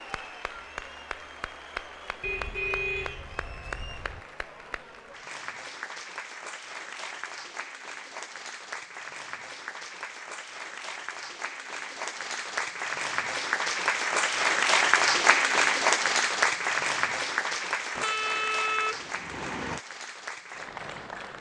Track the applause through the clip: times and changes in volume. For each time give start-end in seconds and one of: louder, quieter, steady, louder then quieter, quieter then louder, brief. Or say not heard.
0.0-21.3 louder then quieter.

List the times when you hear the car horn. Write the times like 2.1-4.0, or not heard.
2.2-4.2, 17.9-19.8.